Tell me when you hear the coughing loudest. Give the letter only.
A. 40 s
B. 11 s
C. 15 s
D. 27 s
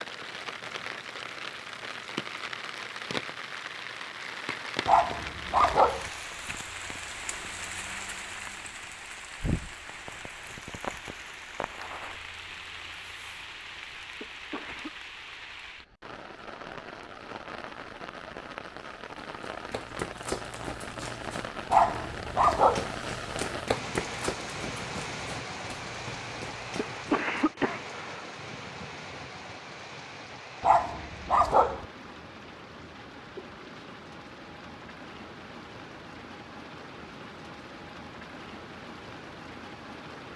D.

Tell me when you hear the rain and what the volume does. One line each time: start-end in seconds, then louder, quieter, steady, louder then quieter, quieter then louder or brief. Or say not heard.
0.0-40.3 quieter.